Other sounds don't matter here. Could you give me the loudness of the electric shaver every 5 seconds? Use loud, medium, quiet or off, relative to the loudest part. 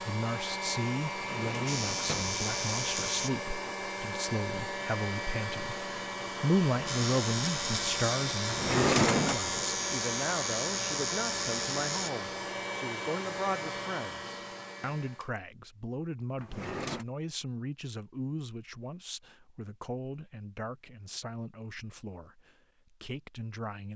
loud, loud, loud, off, off.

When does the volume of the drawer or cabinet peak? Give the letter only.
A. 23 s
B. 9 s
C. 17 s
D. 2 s
B.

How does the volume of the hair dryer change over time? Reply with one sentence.
The volume of the hair dryer stays about the same.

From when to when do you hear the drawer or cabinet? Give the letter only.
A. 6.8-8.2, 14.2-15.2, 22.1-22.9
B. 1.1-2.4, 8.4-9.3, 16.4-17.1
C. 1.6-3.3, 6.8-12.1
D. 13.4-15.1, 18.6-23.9
B.